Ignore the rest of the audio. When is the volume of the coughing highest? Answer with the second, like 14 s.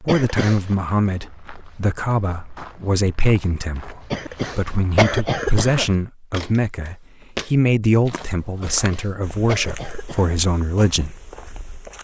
5 s.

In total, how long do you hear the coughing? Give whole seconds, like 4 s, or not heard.
4 s.